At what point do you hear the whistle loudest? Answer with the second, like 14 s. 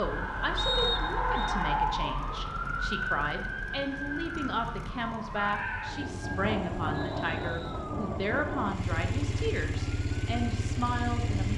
1 s.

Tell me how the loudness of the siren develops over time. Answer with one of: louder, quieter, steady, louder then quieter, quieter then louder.
quieter.